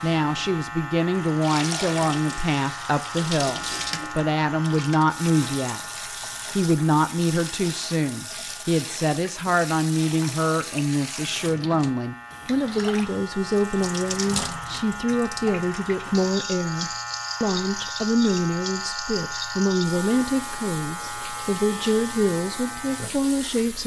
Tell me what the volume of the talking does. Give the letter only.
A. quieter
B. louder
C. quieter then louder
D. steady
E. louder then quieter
D.